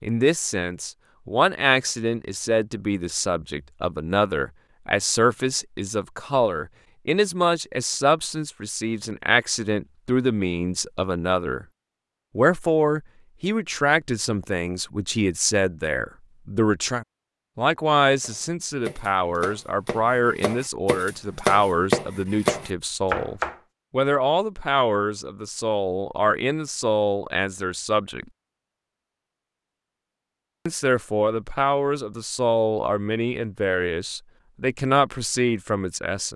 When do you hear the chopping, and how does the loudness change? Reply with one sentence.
The chopping can be heard from 18.2 to 23.6 s, getting quieter then louder.